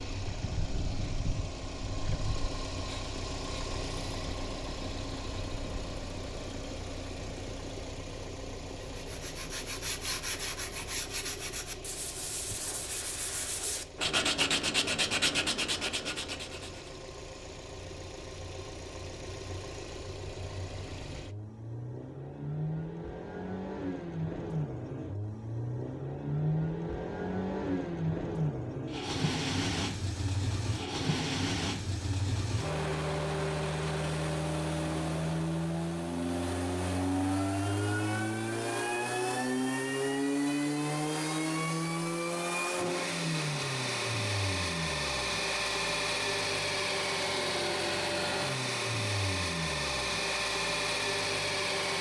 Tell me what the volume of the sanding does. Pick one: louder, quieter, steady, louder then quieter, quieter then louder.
louder.